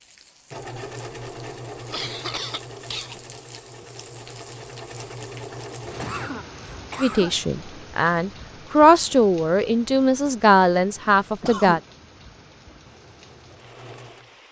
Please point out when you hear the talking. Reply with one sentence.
You can hear the talking from 7.0 to 11.8 s.